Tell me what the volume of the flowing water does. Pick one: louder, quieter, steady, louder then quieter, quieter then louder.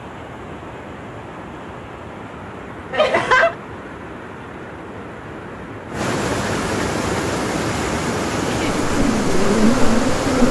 louder.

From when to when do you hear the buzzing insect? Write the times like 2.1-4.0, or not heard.
8.8-10.4.